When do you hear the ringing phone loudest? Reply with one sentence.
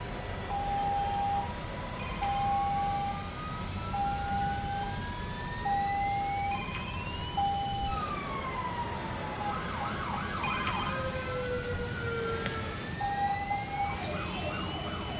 The volume of the ringing phone peaks at 11 seconds.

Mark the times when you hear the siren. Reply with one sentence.
You can hear the siren from 0.0 to 15.1 s.